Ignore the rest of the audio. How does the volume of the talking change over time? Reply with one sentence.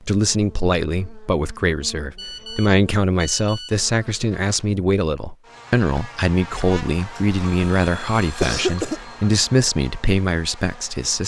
The volume of the talking stays about the same.